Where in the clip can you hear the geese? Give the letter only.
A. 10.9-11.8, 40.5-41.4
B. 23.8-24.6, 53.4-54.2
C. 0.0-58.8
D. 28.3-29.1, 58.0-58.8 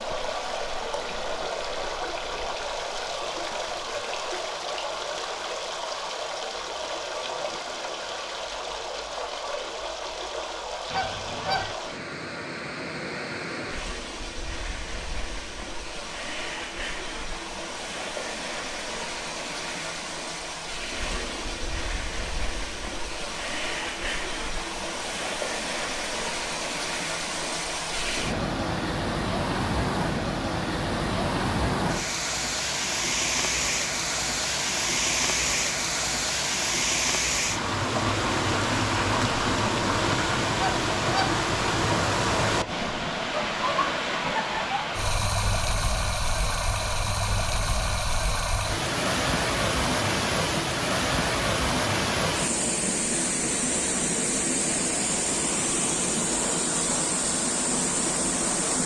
A.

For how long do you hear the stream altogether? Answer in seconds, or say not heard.
59 s.